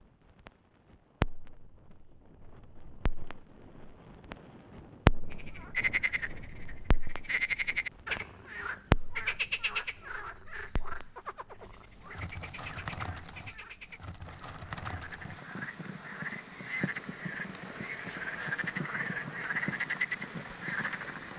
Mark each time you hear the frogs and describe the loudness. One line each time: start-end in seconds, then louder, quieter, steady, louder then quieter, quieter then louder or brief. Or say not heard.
5.3-21.3 quieter then louder.